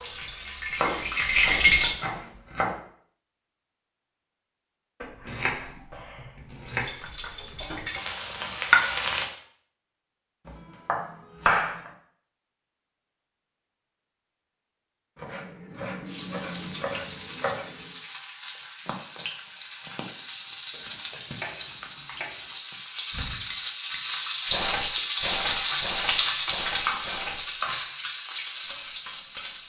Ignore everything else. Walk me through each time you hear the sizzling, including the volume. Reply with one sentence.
The sizzling can be heard briefly from 0.0 to 1.9 s; briefly from 6.6 to 9.3 s; and from 16.1 to 29.6 s, getting louder then quieter.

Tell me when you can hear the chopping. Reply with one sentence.
The chopping can be heard from 0.8 to 2.8 s, from 5.0 to 6.9 s, from 10.4 to 11.9 s, from 15.2 to 17.9 s, from 20.7 to 22.5 s and from 25.4 to 27.8 s.